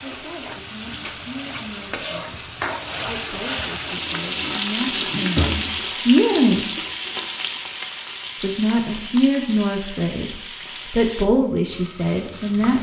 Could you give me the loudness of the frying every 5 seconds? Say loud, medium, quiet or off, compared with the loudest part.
loud, loud, medium.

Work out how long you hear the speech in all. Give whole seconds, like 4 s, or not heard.
11 s.